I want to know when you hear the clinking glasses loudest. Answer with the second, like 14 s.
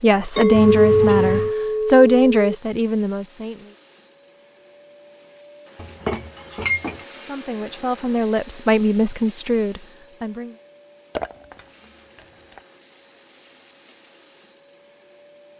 1 s.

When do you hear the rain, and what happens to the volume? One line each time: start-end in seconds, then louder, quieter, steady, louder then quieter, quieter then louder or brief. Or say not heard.
not heard.